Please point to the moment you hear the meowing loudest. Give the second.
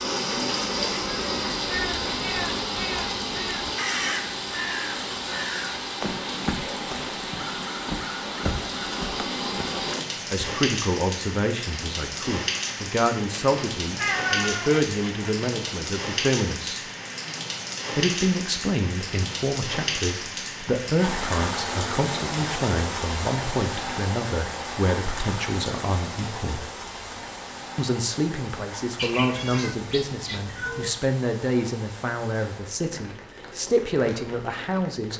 14 s.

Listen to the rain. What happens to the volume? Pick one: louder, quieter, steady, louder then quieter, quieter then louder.
quieter.